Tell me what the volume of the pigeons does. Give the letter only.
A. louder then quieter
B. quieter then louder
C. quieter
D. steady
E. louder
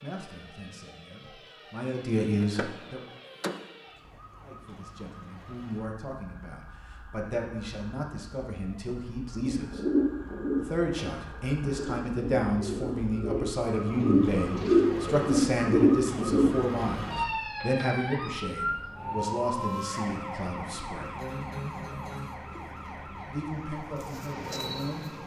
B.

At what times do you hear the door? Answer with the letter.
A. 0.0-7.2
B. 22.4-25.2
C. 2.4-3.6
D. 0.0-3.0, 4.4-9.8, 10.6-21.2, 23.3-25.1
C.